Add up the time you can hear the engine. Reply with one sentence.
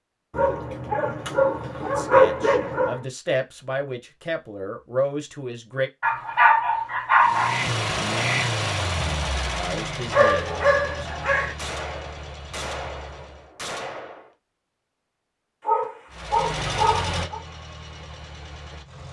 The engine can be heard for 9 seconds in total.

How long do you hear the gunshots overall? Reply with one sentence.
You can hear the gunshots for 3 seconds altogether.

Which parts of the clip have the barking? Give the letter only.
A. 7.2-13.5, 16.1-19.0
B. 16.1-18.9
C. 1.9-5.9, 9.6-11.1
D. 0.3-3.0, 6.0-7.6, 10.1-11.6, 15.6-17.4
D.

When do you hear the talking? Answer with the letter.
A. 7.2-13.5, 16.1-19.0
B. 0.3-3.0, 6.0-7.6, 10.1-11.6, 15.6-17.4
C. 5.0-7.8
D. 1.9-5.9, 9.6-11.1
D.